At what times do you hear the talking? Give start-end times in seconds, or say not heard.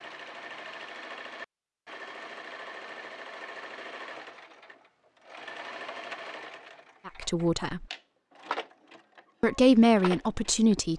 7.0-7.8, 9.4-10.9.